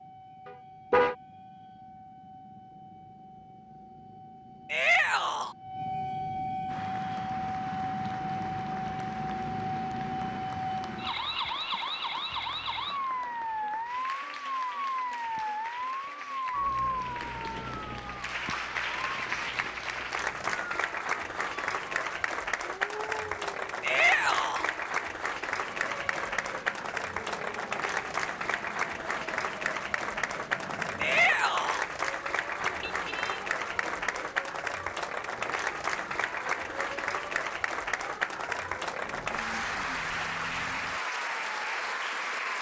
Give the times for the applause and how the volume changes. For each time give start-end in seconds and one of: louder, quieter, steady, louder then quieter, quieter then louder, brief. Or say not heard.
6.7-42.5 louder.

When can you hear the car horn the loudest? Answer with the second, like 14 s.
1 s.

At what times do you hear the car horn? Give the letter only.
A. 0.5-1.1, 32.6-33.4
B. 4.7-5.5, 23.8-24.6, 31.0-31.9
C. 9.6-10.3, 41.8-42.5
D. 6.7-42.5
A.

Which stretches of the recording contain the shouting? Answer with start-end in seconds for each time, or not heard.
4.7-5.5, 23.8-24.6, 31.0-31.9.